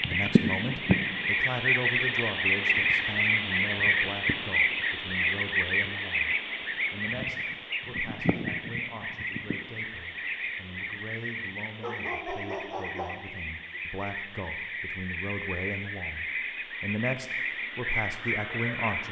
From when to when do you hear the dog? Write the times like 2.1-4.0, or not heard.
11.8-13.4.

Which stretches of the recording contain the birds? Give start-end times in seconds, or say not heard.
0.0-19.0.